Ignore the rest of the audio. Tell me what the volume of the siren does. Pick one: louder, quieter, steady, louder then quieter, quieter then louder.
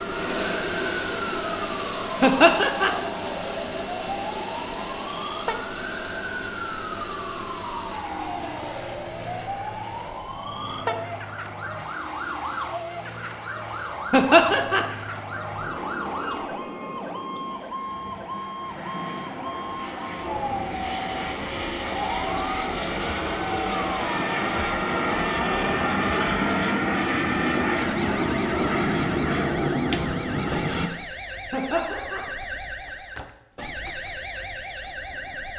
steady.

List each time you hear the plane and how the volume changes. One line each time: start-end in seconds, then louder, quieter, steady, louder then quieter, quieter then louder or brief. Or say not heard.
0.0-30.9 quieter then louder.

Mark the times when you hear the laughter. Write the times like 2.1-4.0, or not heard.
2.2-2.9, 14.1-14.8, 31.5-32.2.